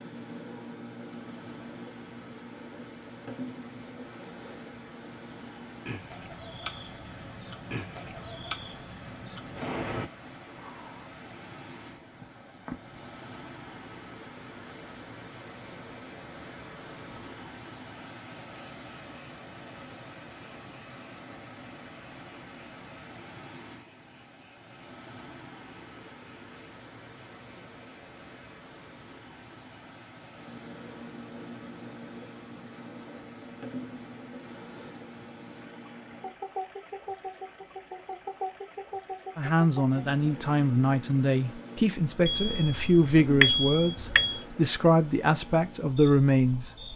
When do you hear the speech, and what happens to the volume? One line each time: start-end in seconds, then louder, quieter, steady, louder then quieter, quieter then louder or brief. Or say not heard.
39.4-46.7 steady.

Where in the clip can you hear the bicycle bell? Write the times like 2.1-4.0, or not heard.
42.2-44.4.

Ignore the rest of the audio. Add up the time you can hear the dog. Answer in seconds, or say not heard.
not heard.